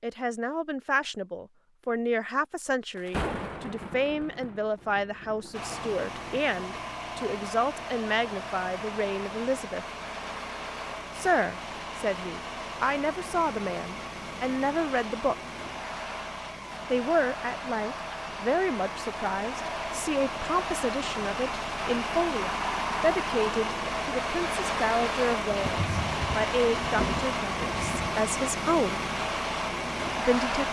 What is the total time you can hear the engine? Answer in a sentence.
The engine can be heard for 25 seconds in total.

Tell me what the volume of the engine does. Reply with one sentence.
The volume of the engine goes up.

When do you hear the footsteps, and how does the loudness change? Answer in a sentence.
The footsteps can't be heard in this clip.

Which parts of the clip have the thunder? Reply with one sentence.
The thunder can be heard from 3.0 to 6.4 s and from 25.4 to 28.1 s.